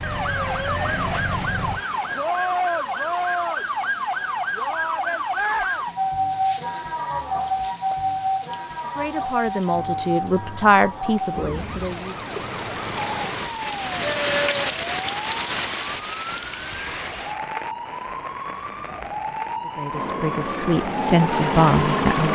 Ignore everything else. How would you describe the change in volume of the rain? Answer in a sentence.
The volume of the rain goes up, then down.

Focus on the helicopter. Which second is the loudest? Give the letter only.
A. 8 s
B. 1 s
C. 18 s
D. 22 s
D.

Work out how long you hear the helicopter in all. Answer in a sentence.
The helicopter can be heard for 4 seconds in total.